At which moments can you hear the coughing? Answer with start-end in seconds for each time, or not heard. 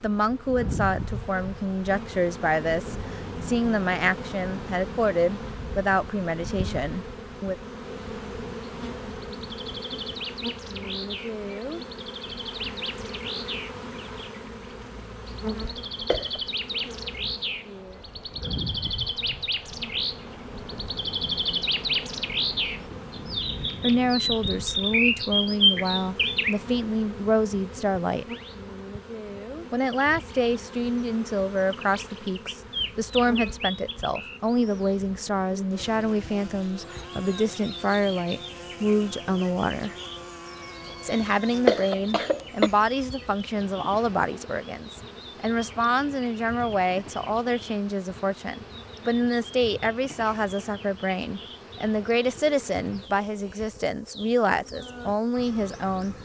15.6-16.4, 41.1-42.7.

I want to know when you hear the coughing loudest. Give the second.
42 s.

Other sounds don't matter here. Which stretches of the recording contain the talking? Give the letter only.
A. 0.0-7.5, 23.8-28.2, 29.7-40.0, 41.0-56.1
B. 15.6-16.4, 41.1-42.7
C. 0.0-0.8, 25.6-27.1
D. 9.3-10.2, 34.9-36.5
A.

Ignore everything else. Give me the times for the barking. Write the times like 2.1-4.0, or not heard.
not heard.